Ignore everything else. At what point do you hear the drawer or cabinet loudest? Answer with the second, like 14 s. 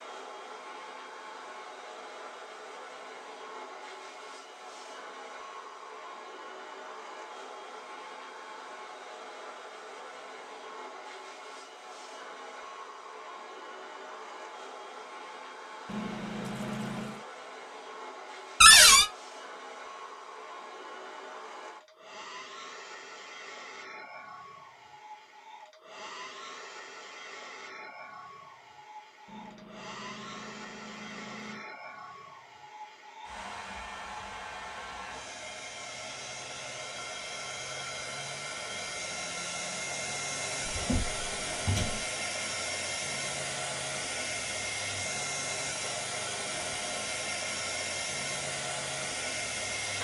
19 s.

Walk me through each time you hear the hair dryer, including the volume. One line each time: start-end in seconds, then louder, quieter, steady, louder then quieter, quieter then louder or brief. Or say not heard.
0.0-49.9 louder.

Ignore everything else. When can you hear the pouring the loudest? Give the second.
17 s.